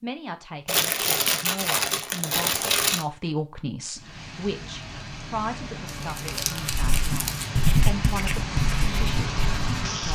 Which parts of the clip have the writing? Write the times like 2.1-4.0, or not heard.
6.7-10.0.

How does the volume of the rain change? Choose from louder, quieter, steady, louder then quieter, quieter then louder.
louder.